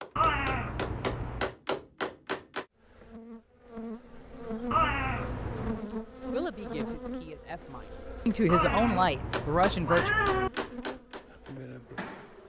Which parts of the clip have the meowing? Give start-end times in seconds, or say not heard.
0.1-1.5, 4.7-5.8, 8.4-10.5.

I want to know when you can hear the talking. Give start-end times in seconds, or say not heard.
6.3-10.1.